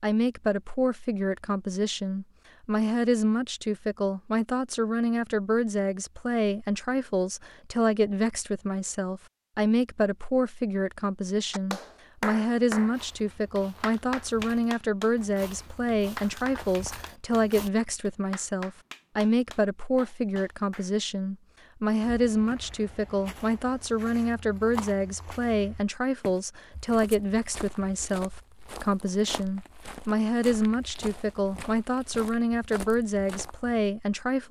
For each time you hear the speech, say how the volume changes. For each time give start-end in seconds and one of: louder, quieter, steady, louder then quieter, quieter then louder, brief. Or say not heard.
0.0-34.4 steady.